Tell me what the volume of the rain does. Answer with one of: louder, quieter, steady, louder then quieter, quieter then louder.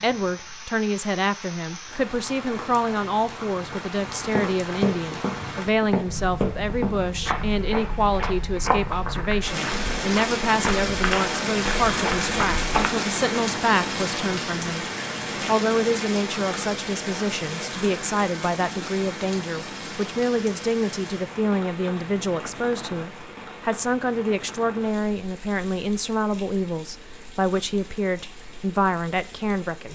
louder then quieter.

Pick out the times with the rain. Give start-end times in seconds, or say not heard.
0.0-29.8.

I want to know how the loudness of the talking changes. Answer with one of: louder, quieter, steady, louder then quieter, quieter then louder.
steady.